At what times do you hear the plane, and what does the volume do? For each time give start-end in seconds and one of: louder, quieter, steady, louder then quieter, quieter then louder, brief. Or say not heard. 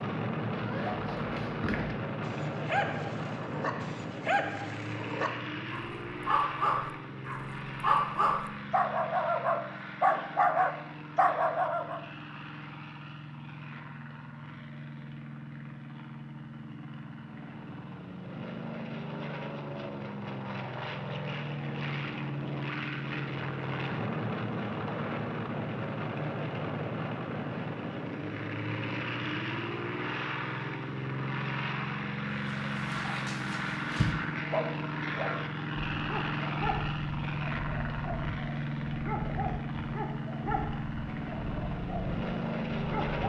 0.0-43.2 quieter then louder.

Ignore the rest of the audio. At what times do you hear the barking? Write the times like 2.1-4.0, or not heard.
0.5-12.0, 32.3-43.2.